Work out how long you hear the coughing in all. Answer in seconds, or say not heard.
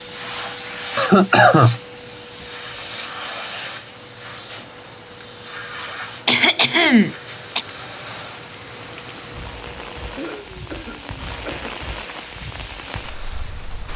4 s.